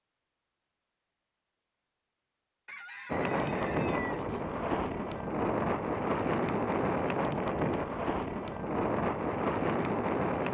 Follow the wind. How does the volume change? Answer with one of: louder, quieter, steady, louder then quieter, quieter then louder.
steady.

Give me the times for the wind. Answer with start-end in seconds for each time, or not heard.
3.0-10.4.